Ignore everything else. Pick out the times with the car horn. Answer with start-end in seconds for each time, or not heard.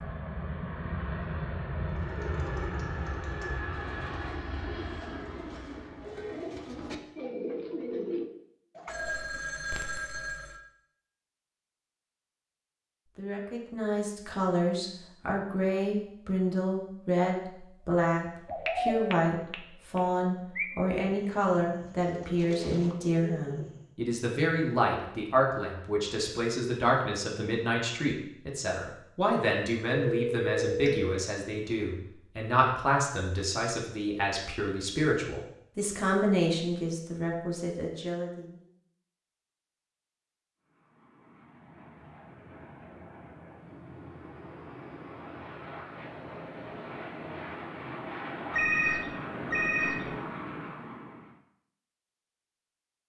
not heard.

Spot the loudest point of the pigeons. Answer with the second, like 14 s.
19 s.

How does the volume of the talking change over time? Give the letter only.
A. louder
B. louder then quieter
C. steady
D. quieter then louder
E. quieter
C.